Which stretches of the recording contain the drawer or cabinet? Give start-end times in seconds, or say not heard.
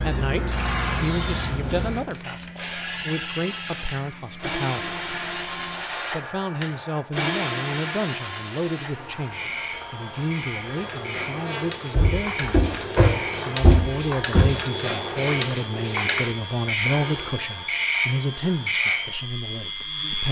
11.9-14.5.